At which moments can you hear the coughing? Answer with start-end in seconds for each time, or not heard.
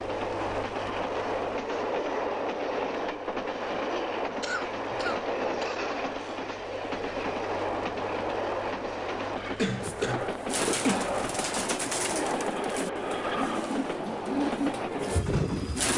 4.4-6.3, 9.6-11.2.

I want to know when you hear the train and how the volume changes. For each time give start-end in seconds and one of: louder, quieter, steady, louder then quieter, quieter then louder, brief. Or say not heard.
0.0-15.9 steady.